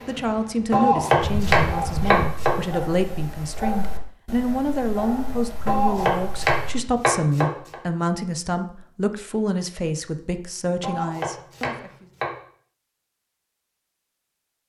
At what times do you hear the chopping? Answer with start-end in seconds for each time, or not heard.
0.7-2.5, 5.7-7.8, 10.8-12.3.